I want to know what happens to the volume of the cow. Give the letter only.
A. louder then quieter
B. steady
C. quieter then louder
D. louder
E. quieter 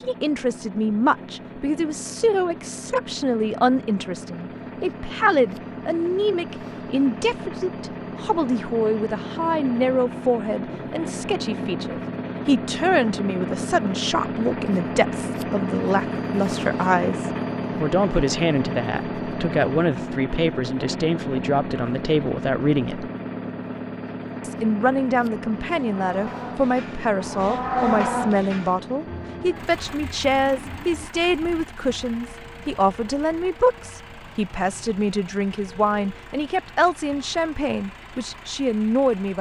A.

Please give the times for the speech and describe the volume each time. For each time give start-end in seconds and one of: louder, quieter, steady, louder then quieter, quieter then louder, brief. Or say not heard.
0.0-23.1 steady
24.4-39.3 steady.